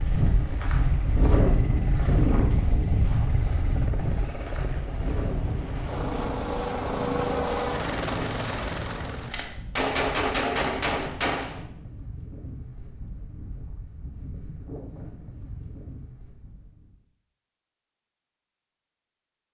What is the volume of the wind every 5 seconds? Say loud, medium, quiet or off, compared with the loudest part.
loud, medium, quiet, quiet.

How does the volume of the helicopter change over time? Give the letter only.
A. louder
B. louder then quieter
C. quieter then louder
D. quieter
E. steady
A.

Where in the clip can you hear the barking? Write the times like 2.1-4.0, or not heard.
not heard.